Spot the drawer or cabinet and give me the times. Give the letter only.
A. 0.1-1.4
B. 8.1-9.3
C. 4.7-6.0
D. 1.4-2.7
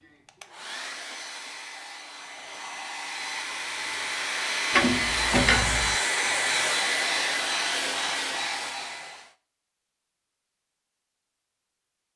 C.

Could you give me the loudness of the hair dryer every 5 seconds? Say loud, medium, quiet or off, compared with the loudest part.
medium, loud, off.